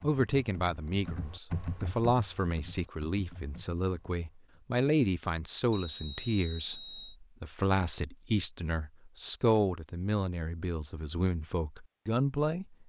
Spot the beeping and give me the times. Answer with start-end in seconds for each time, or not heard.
5.7-7.2.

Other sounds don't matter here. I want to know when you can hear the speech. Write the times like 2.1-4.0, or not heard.
0.0-12.8.